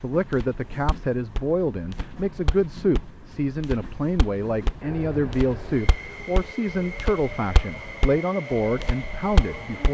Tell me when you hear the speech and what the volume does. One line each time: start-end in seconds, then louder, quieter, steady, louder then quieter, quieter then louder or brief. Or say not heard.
0.0-9.9 steady.